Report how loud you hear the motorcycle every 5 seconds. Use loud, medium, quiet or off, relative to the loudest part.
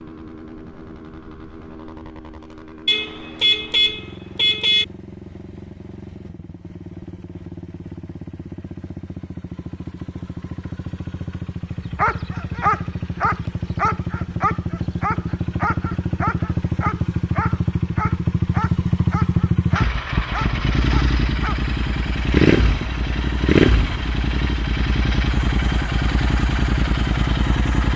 quiet, quiet, medium, loud, loud, loud.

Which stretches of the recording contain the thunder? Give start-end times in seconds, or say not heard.
not heard.